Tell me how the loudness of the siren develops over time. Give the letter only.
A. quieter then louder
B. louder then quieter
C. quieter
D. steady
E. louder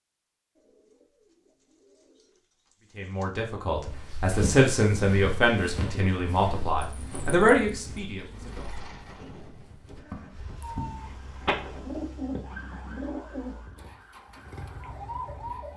A.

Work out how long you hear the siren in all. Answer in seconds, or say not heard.
5 s.